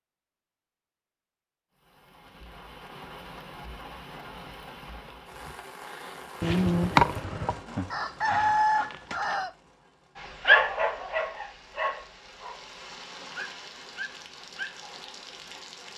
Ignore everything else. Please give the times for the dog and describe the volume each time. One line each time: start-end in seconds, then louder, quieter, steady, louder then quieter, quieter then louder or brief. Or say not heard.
10.2-15.6 quieter then louder.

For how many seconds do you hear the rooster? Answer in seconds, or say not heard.
3 s.